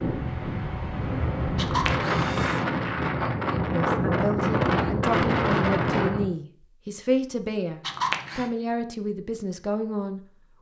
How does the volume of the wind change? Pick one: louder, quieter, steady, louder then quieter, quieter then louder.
louder.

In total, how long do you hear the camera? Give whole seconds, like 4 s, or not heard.
2 s.